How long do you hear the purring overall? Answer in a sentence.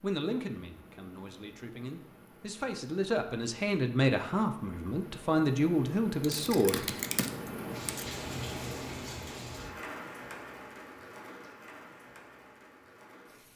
The purring can't be heard in this clip.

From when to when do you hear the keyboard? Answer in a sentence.
The keyboard can be heard from 6.2 to 8.2 s.